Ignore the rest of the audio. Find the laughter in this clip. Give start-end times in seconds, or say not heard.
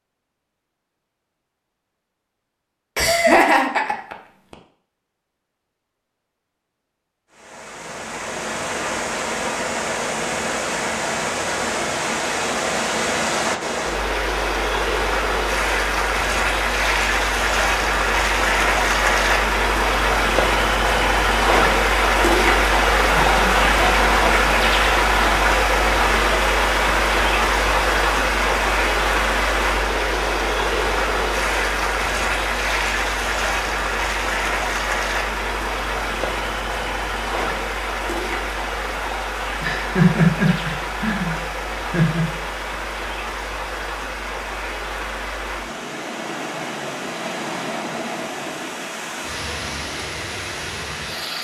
3.0-4.5, 23.1-24.5, 39.6-42.2.